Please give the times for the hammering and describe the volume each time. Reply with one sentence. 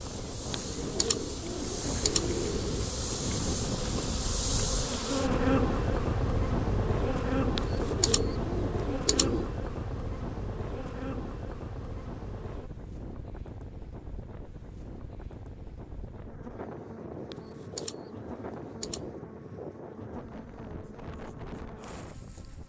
The hammering can't be heard in this clip.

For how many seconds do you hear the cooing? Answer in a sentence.
The cooing can be heard for 6 seconds in total.